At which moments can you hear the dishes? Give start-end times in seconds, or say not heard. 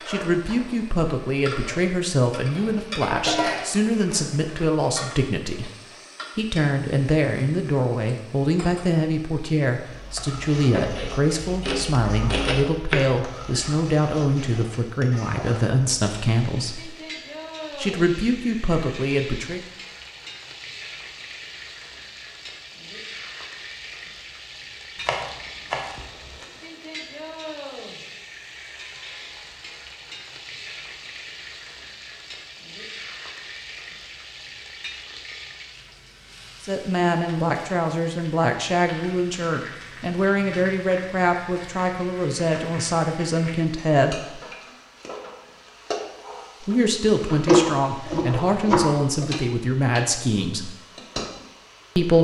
2.5-4.3.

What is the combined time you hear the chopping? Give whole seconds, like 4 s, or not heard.
6 s.